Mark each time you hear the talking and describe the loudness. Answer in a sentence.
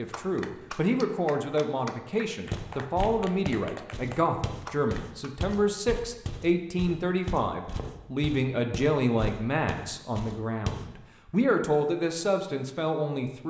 You can hear the talking from 0.0 to 13.4 s, at a steady volume.